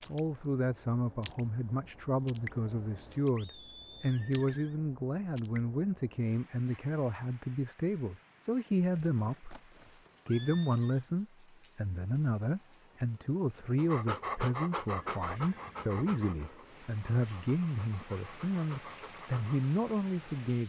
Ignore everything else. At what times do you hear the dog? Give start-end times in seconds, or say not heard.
13.8-19.7.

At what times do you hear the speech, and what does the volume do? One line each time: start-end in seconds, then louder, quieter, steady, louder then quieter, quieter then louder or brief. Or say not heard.
0.1-9.6 steady
10.2-20.6 steady.